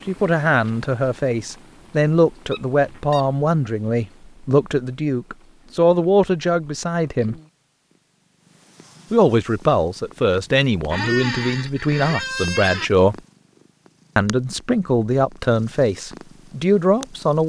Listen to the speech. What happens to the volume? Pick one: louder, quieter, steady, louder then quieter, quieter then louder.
steady.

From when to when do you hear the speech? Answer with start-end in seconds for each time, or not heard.
0.1-7.3, 9.1-13.2, 14.2-17.4.